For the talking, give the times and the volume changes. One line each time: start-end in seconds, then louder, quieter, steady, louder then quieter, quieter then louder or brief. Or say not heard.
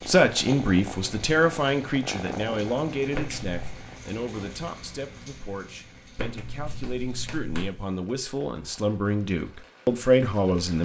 0.1-10.8 quieter then louder.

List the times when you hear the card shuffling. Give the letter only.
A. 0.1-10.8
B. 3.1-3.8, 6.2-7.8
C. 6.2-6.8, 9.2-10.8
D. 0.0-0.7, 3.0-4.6
B.